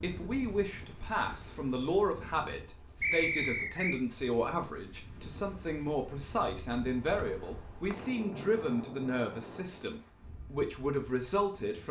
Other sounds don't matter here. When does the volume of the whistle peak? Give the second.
3 s.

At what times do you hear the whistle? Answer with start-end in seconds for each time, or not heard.
3.0-4.0, 7.2-8.1.